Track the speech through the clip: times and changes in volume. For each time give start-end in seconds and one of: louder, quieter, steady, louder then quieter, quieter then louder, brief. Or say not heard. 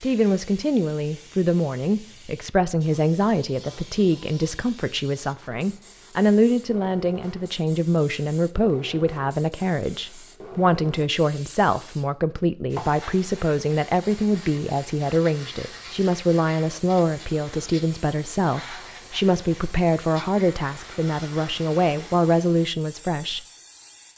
0.0-23.4 steady.